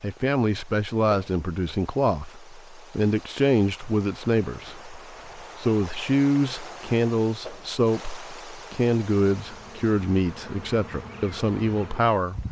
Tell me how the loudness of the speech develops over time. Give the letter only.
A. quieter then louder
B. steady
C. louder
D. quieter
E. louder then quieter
B.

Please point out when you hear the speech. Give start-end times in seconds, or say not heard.
0.0-12.4.